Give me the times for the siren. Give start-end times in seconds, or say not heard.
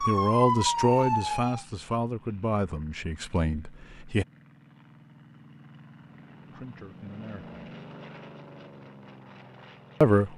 0.0-1.6.